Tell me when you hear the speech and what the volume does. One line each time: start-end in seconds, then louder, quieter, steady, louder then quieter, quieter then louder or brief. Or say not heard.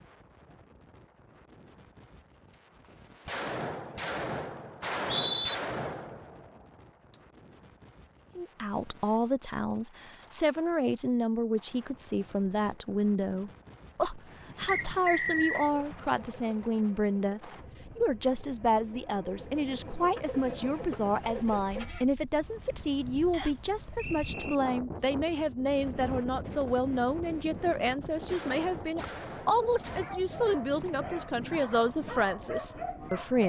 8.3-33.4 steady.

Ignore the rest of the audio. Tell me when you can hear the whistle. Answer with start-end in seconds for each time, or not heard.
4.8-5.5, 14.7-15.7, 23.3-24.6.